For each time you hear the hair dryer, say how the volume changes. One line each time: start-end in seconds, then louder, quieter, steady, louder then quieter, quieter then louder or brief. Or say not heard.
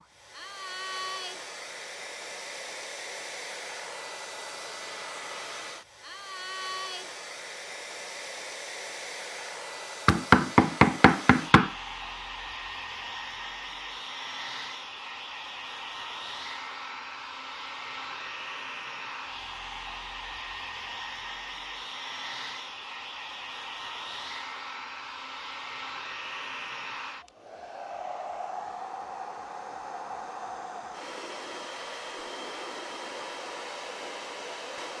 0.0-34.9 steady.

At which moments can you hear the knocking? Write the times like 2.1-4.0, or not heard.
10.1-11.7.